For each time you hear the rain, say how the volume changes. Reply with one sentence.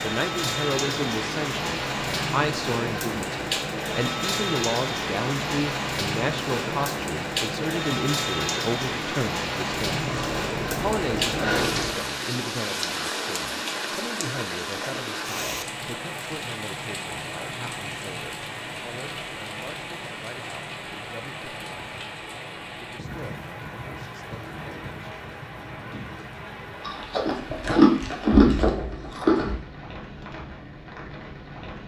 The rain can be heard from 0.0 to 31.8 s, getting quieter.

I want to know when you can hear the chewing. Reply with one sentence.
The chewing can be heard from 9.9 to 11.9 s and from 26.9 to 29.6 s.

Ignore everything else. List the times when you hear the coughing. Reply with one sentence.
The coughing can't be heard in this clip.